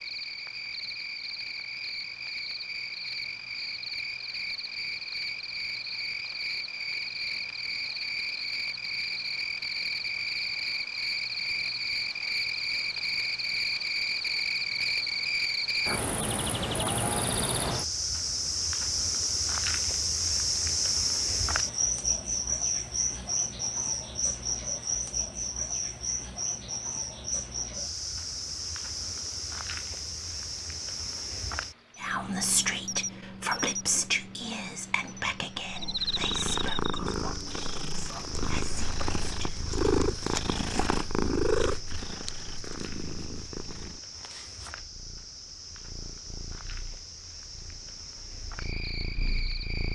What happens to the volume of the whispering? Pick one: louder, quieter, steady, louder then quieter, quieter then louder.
quieter.